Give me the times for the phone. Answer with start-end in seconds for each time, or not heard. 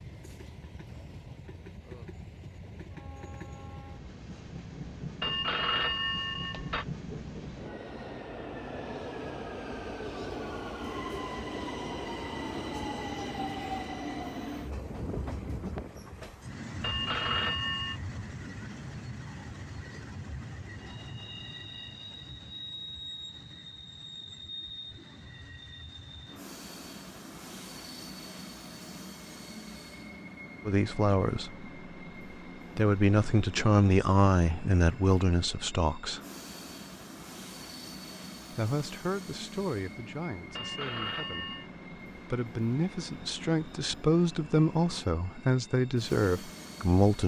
5.2-6.8, 16.8-18.0, 40.5-41.7.